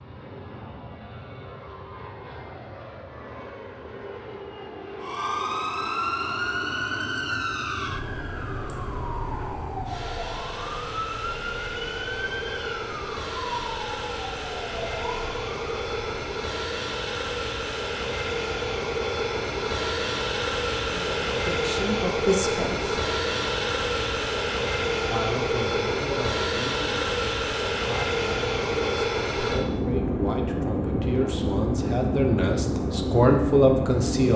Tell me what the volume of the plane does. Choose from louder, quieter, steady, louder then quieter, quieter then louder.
louder.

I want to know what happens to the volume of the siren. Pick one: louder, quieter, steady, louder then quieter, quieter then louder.
quieter.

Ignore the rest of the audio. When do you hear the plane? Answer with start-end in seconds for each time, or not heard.
0.0-34.3.